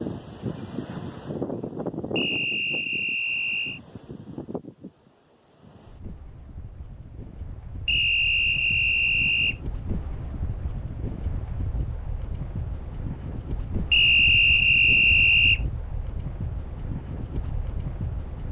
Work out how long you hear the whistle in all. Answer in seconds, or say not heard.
5 s.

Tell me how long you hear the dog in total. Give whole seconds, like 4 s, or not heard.
not heard.